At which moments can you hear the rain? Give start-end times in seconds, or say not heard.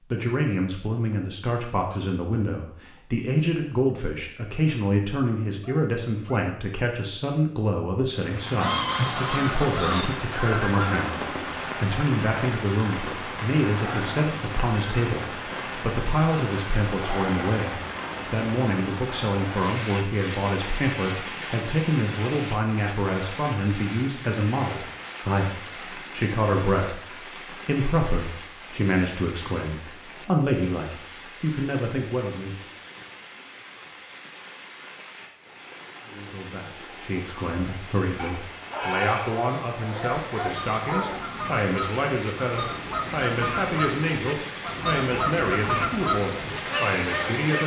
8.2-47.6.